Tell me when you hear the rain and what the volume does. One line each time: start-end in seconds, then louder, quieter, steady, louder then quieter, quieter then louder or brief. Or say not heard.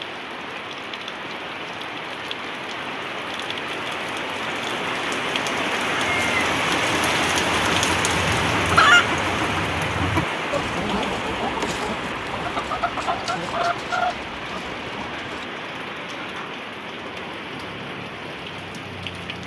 0.0-19.4 louder then quieter.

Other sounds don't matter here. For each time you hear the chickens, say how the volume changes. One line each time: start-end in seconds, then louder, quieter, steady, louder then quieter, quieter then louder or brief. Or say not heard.
6.0-15.4 louder then quieter.